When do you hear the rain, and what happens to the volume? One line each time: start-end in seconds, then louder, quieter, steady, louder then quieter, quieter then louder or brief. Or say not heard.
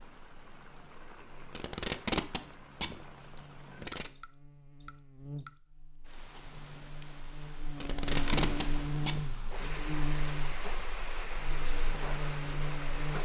0.0-13.2 louder.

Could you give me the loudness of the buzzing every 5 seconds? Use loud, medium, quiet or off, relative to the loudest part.
quiet, loud, loud.